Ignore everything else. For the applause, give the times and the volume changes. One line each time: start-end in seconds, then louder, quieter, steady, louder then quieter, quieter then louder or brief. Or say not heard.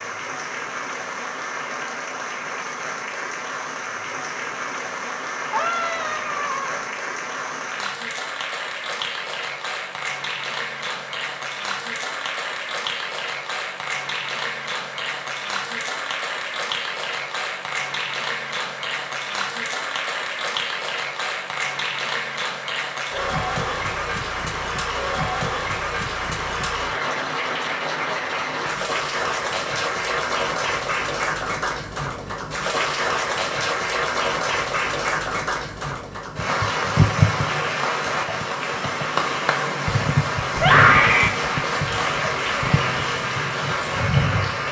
0.0-44.6 louder.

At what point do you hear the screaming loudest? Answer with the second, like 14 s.
41 s.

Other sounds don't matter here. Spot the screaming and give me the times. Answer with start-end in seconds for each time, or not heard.
5.5-6.8, 40.5-41.3.